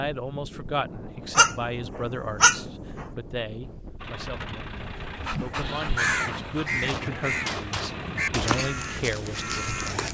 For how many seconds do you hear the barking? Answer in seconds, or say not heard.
3 s.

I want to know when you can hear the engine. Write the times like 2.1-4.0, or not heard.
4.0-8.6.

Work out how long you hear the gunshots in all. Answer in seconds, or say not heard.
2 s.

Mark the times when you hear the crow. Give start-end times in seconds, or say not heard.
4.8-10.0.